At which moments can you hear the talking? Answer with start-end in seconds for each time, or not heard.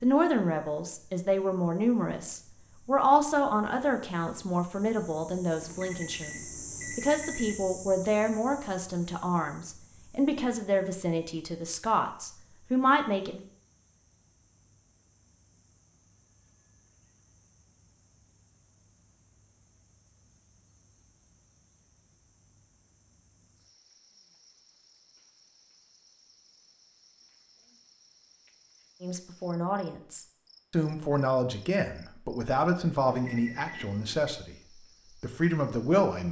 0.0-13.4, 29.0-34.5, 35.2-36.2.